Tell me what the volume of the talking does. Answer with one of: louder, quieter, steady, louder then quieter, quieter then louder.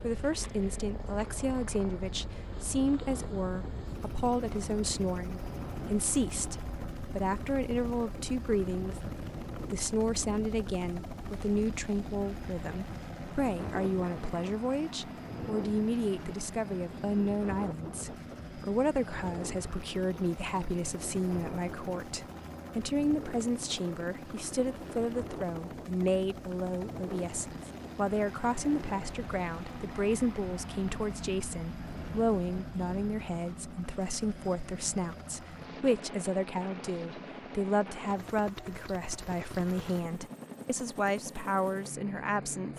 steady.